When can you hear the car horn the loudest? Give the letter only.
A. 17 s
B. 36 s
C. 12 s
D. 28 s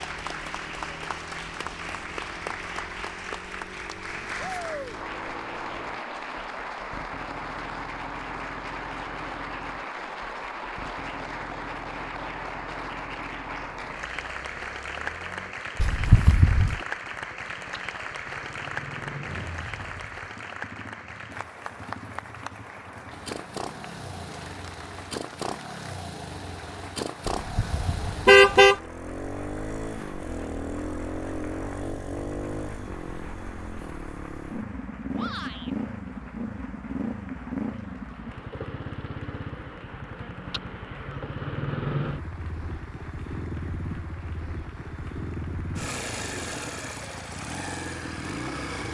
D.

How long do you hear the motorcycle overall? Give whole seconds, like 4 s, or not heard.
49 s.